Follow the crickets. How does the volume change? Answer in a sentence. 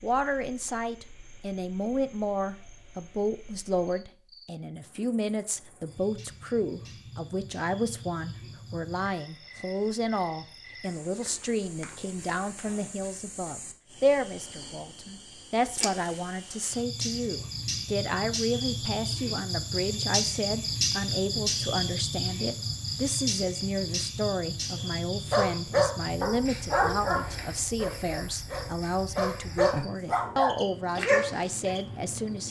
The loudness of the crickets goes up, then down.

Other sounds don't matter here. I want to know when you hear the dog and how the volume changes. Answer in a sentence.
The dog can be heard from 25.3 to 31.8 s, getting quieter then louder.